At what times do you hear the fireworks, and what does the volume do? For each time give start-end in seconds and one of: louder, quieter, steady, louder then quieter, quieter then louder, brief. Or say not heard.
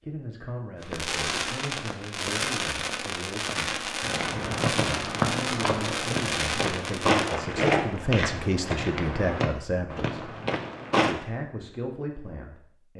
0.8-7.3 steady.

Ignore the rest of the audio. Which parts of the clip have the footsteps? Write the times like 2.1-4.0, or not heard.
4.0-11.2.